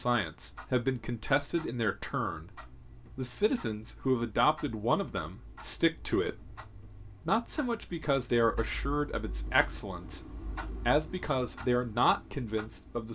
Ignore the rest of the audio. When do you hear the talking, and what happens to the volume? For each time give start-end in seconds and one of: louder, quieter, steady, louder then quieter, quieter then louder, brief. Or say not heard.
0.0-13.0 steady.